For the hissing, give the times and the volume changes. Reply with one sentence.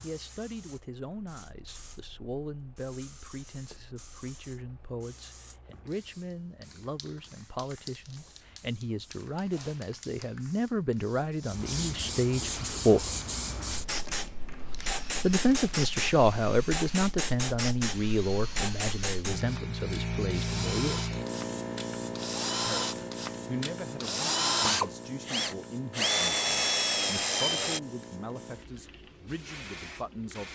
You can hear the hissing from 0.0 to 30.4 s, getting louder then quieter.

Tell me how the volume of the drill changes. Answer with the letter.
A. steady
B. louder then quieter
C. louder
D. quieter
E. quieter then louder
C.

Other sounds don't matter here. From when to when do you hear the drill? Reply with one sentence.
The drill can be heard from 12.4 to 27.8 s.